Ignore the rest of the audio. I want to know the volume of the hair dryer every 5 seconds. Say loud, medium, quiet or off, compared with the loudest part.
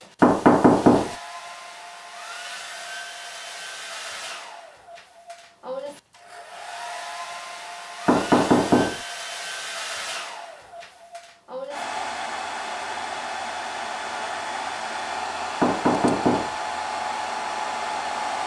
medium, medium, loud, loud.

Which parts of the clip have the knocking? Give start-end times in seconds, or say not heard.
0.2-1.1, 8.1-9.0, 15.6-16.6.